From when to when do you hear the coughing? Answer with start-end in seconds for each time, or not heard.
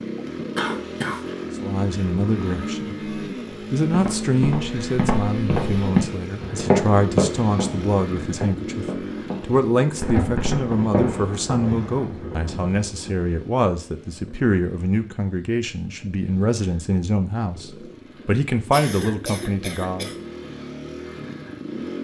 0.6-1.4, 18.7-20.1.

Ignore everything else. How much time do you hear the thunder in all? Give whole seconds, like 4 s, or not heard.
3 s.